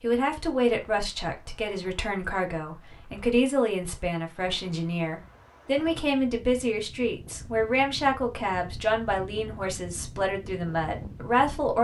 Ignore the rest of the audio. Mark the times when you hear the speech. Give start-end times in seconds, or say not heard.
0.0-11.7.